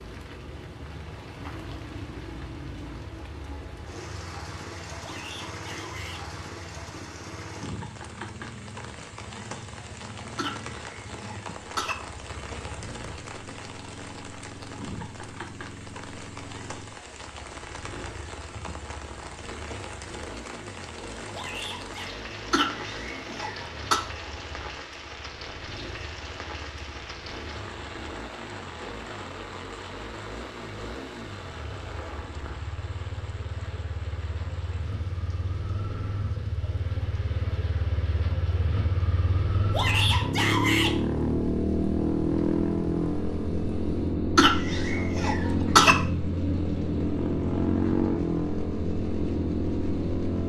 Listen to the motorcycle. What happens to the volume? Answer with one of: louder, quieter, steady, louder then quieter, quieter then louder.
louder.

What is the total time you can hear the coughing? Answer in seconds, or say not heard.
5 s.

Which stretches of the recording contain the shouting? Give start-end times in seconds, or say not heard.
5.0-6.2, 21.3-22.1, 39.7-41.0.